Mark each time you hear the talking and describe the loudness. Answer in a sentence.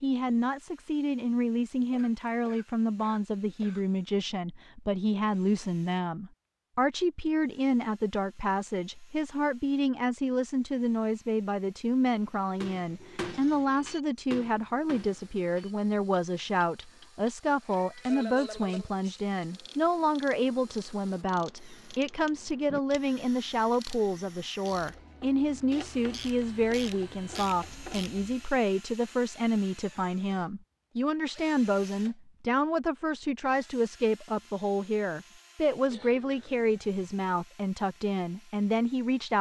You can hear the talking from 0.0 to 39.3 s, at a steady volume.